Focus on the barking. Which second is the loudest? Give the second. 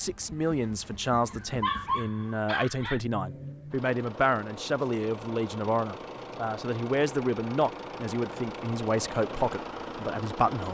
2 s.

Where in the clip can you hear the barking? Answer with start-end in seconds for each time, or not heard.
0.6-3.0.